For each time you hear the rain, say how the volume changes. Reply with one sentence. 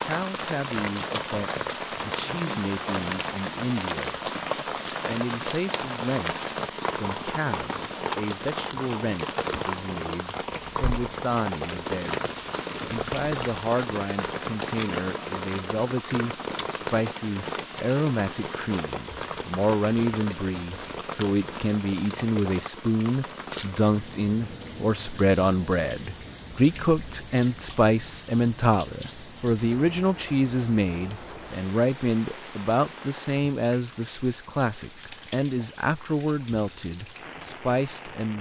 The rain can be heard from 0.0 to 38.3 s, getting quieter.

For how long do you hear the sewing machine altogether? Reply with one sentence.
You can't hear the sewing machine here.